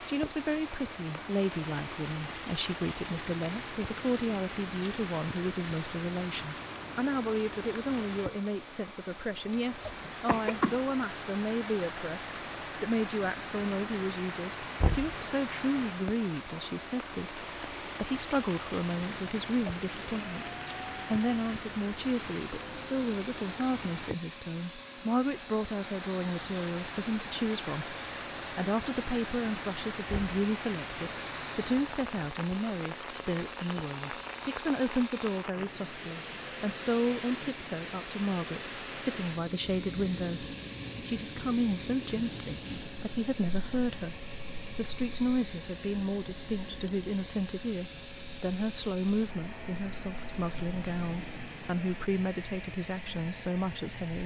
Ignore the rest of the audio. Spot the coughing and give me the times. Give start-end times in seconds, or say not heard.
9.5-10.8.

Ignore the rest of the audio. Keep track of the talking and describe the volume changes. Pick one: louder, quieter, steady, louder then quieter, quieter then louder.
steady.